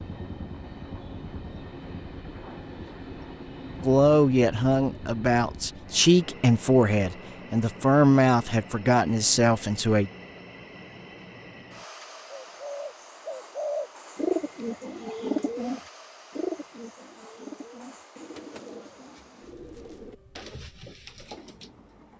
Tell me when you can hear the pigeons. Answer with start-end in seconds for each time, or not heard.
12.3-21.8.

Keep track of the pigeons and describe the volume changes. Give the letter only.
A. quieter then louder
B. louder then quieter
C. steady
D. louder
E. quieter
E.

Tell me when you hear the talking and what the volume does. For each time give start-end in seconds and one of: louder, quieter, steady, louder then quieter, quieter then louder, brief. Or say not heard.
3.8-10.1 steady.